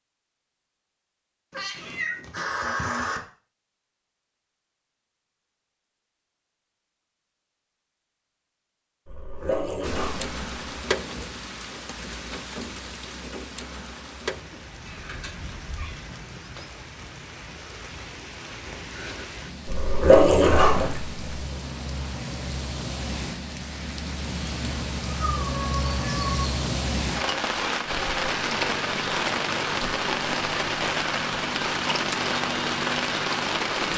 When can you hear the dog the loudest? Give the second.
20 s.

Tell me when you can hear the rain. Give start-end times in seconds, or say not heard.
9.8-33.9.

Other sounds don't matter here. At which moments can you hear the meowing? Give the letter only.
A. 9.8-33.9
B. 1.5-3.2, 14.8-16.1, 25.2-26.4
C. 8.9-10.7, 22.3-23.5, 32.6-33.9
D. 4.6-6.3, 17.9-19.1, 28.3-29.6
B.